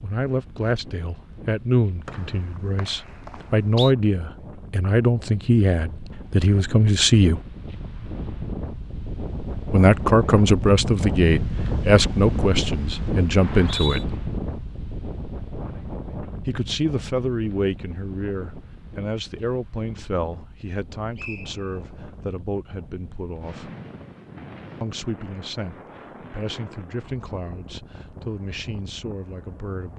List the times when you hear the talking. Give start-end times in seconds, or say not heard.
0.0-7.4, 9.7-14.2, 16.4-23.7, 24.8-29.9.